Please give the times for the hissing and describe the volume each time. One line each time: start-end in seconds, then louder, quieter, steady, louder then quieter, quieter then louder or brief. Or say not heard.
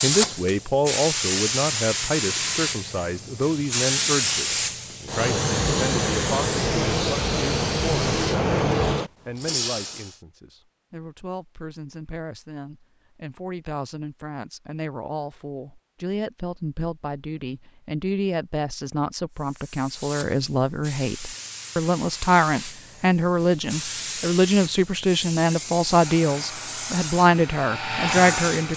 0.0-10.2 steady
19.4-28.7 louder.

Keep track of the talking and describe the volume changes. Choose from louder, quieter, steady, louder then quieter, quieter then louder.
quieter then louder.